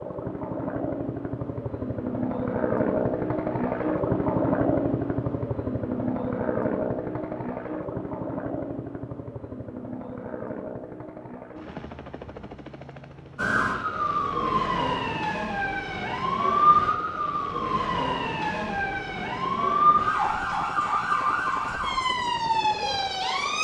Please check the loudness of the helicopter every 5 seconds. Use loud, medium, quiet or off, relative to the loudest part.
loud, loud, quiet, quiet, quiet.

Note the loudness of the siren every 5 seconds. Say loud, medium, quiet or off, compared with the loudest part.
off, off, loud, loud, loud.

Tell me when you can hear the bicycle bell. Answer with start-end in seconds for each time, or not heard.
not heard.